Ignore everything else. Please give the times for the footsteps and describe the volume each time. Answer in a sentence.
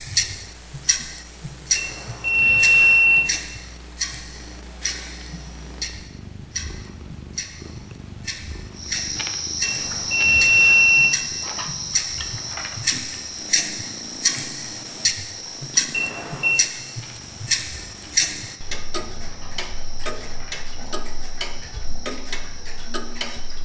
You can't hear the footsteps here.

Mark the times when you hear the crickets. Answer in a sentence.
You can hear the crickets from 8.8 to 23.6 s.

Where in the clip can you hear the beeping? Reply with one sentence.
The beeping can be heard from 1.8 to 3.2 s, from 9.6 to 11.1 s and from 15.9 to 16.6 s.